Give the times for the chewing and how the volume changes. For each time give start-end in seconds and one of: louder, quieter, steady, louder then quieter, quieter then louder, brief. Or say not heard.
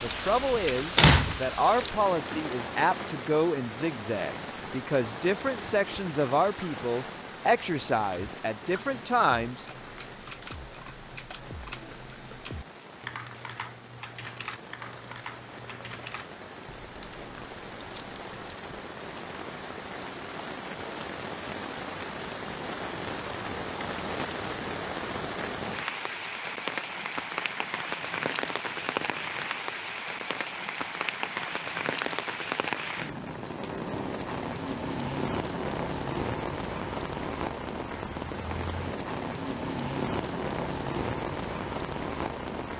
not heard.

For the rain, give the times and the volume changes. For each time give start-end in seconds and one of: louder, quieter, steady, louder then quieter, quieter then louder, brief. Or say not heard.
0.0-42.7 quieter then louder.